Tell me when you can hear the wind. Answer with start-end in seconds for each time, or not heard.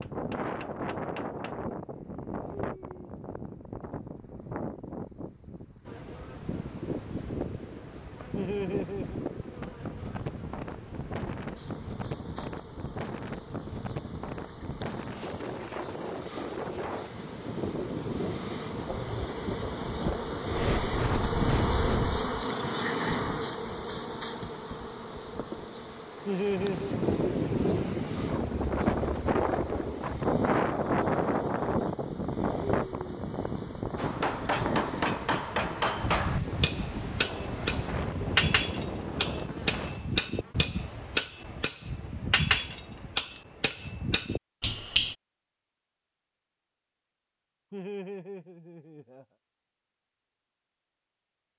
0.0-40.0.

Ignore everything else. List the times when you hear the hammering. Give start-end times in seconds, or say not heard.
0.0-1.6, 34.0-45.1.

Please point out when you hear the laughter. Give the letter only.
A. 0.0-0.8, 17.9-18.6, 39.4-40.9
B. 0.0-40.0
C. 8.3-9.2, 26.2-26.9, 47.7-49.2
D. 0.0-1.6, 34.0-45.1
C.